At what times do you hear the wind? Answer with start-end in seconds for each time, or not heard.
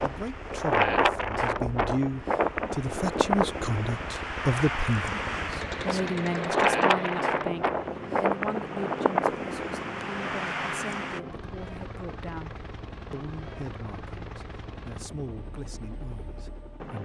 0.0-11.2.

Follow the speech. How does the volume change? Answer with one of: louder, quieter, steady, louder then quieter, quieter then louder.
quieter.